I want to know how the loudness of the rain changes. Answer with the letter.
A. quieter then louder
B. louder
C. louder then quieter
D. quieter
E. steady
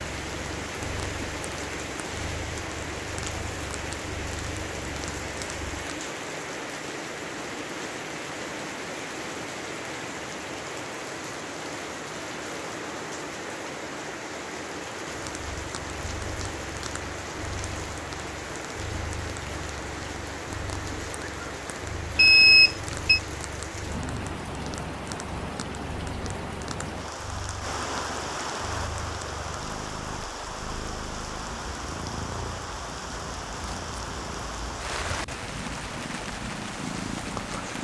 E.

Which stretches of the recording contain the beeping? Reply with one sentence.
The beeping can be heard from 22.1 to 23.2 s.